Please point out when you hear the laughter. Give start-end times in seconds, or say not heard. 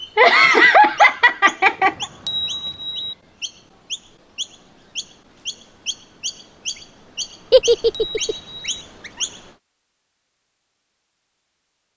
0.1-2.0, 7.5-8.3.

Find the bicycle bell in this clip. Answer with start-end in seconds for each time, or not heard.
1.8-3.1, 7.5-8.8.